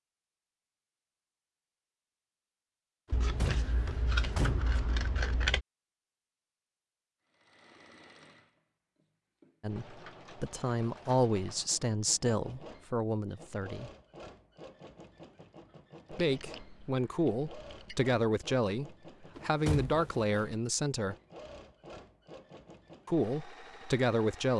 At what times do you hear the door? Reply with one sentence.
You can hear the door from 3.1 to 4.8 s and from 19.4 to 20.6 s.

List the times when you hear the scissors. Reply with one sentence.
You can hear the scissors from 3.1 to 5.7 s and from 16.2 to 18.1 s.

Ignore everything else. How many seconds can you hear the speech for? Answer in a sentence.
You can hear the speech for 11 seconds altogether.